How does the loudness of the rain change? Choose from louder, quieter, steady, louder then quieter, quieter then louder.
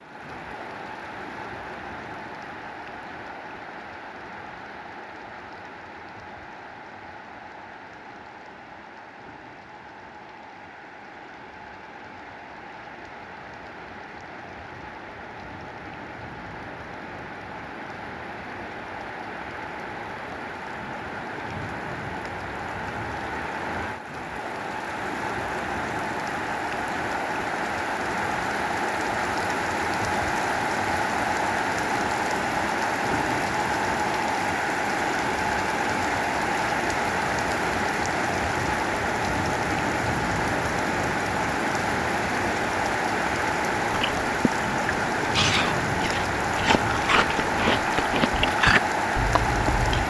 louder.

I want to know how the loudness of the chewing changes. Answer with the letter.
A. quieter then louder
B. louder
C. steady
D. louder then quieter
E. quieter
D.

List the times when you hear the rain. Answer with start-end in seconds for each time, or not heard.
0.0-50.0.